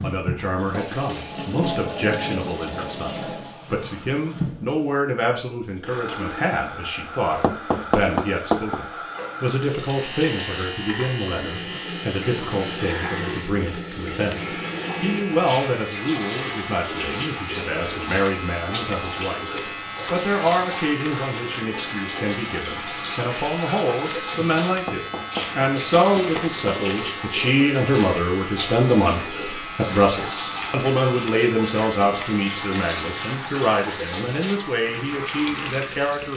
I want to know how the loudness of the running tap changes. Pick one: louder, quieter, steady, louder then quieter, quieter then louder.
steady.